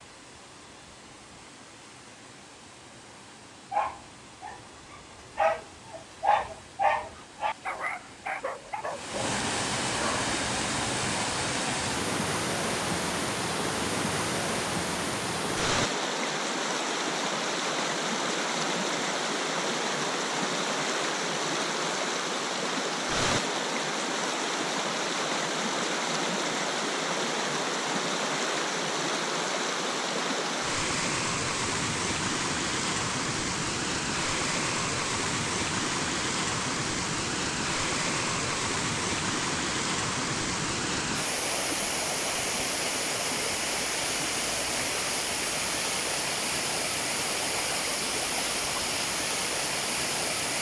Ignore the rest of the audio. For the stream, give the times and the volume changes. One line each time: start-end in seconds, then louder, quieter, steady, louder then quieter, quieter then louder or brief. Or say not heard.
0.0-50.5 louder.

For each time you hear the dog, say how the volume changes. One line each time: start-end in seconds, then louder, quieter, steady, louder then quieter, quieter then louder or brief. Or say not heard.
3.7-10.2 louder then quieter.